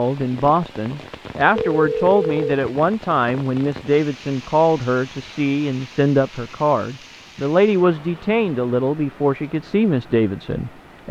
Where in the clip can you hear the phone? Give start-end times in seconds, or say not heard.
1.6-2.5.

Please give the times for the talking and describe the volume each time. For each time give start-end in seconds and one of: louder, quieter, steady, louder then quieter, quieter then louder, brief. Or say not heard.
0.0-11.0 steady.